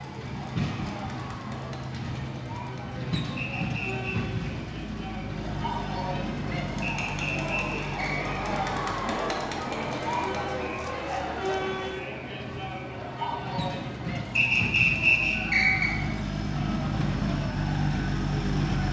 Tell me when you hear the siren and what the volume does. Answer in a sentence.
The siren can't be heard in this clip.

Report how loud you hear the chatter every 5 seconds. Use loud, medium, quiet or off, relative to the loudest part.
medium, loud, loud, medium.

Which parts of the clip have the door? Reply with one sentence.
The door can't be heard in this clip.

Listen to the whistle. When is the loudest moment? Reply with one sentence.
The loudest moment of the whistle is at 15 seconds.